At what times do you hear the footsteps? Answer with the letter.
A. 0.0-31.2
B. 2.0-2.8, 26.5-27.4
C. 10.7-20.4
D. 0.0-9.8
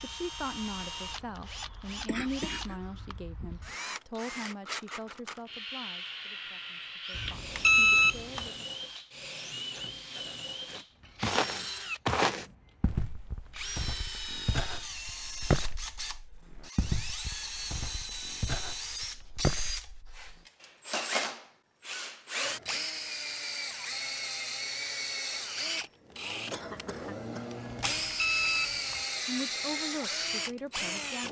C.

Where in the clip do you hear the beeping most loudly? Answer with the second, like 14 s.
8 s.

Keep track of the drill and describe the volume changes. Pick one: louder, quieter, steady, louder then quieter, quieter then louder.
louder.